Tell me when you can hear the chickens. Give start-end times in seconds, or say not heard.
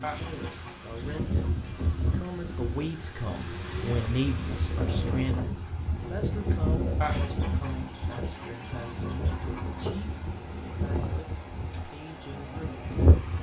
0.0-2.1, 7.0-9.8.